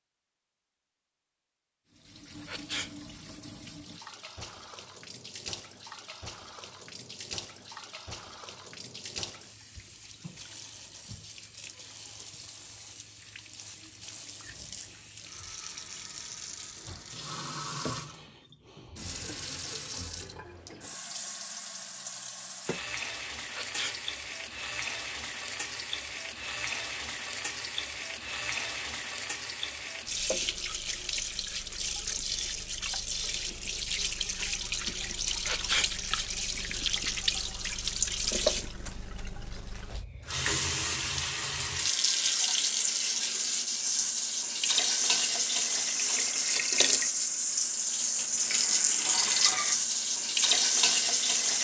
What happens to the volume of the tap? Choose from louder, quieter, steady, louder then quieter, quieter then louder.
louder.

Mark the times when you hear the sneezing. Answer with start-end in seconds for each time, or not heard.
2.5-2.9, 23.5-24.0, 35.5-35.9.